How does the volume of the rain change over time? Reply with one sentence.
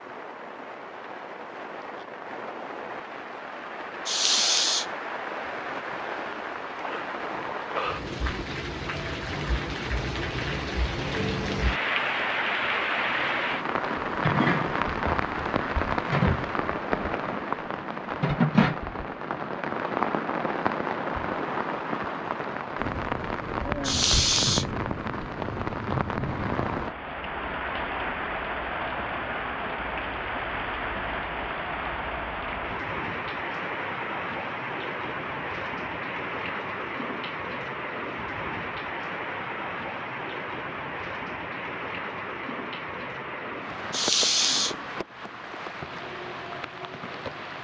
The volume of the rain goes up, then down.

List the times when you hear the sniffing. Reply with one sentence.
The sniffing can be heard from 4.0 to 4.8 s, from 23.8 to 24.6 s and from 43.9 to 44.8 s.